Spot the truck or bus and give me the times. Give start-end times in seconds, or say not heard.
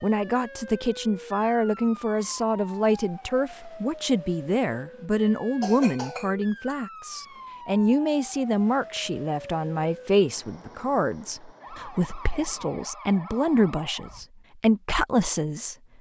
not heard.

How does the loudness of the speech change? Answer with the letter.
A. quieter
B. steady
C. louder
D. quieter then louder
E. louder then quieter
B.